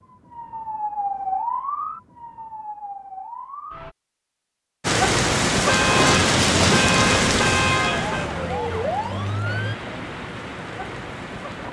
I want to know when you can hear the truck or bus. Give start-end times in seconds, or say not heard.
not heard.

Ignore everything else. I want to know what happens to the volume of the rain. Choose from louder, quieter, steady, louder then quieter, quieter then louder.
quieter.